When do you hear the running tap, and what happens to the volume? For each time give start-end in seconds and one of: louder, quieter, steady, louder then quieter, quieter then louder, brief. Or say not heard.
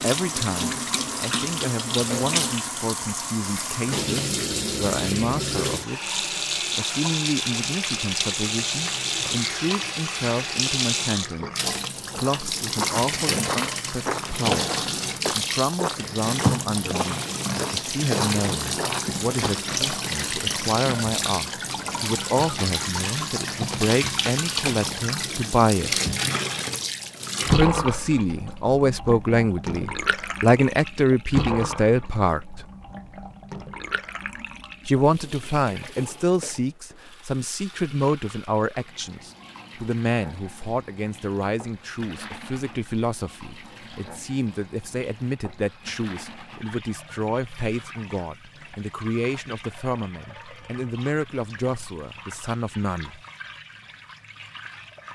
0.0-55.1 quieter.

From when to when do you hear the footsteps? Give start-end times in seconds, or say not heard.
12.1-19.8.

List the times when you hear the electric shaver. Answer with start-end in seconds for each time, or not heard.
not heard.